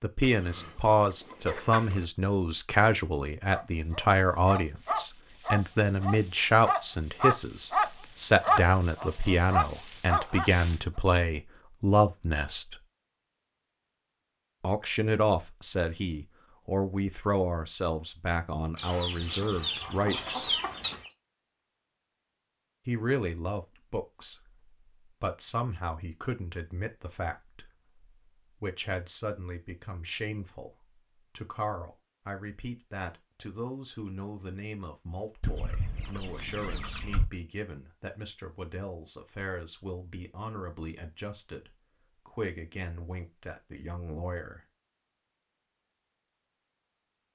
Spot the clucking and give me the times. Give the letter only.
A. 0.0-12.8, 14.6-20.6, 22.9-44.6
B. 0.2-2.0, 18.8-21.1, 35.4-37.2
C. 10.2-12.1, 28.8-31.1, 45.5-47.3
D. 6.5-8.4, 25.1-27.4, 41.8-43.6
B.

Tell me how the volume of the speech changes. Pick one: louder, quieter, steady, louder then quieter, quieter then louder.
quieter.